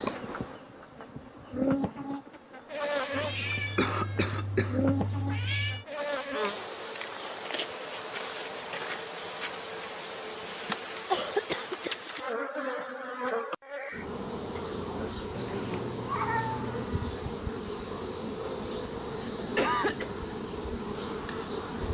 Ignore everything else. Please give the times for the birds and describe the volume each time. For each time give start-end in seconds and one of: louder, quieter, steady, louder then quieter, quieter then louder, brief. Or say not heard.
not heard.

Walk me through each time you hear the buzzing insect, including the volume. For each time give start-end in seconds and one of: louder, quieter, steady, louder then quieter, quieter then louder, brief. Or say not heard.
0.0-21.8 steady.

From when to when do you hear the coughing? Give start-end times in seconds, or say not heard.
3.8-4.8, 11.1-12.3, 19.1-20.1.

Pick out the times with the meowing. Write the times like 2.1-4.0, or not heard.
3.1-5.8, 15.3-16.9.